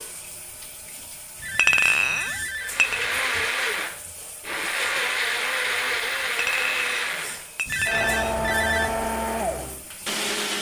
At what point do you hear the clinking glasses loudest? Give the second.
2 s.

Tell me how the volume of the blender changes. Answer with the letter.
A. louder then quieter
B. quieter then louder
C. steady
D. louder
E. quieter
C.